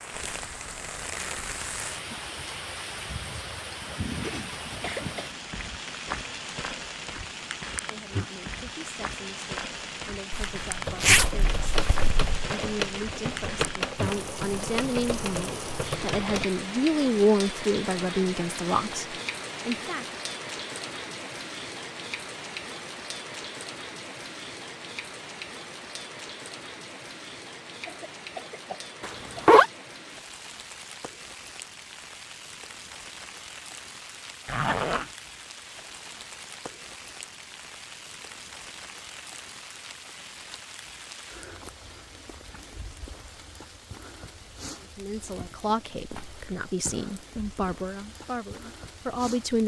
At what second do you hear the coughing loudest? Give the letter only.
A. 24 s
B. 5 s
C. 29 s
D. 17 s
B.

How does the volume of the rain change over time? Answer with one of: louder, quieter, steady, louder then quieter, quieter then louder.
quieter.